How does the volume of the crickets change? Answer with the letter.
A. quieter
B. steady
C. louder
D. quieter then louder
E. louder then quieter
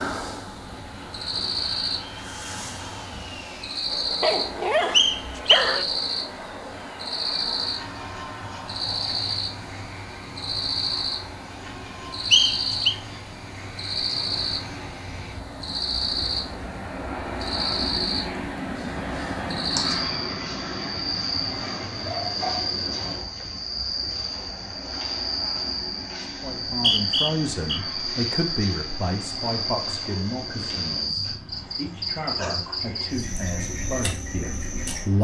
B.